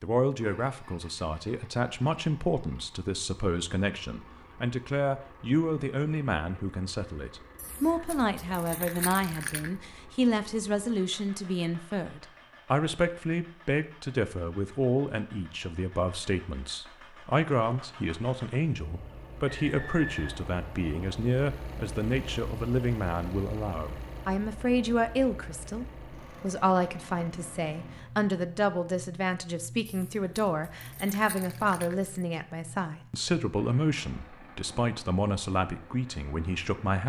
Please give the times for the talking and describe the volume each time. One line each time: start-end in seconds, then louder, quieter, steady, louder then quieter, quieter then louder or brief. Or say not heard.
0.0-37.0 steady.